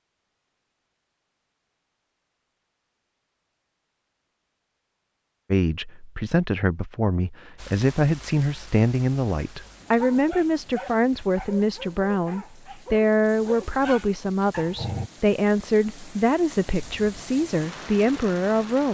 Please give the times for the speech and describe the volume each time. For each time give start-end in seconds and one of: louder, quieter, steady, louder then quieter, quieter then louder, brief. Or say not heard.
5.5-18.9 steady.